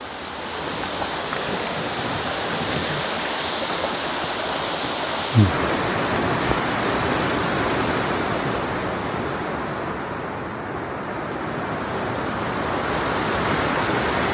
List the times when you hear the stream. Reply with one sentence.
You can hear the stream from 0.0 to 14.2 s.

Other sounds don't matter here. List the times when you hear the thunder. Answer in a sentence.
The thunder can be heard from 1.1 to 3.0 s.